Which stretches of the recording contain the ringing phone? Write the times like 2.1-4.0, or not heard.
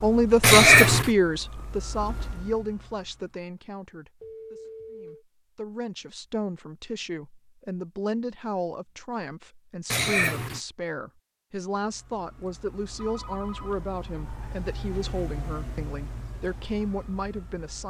4.2-5.2, 12.9-13.8.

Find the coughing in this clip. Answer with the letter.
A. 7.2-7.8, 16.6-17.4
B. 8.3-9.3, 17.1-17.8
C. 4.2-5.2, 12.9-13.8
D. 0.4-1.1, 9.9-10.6
D.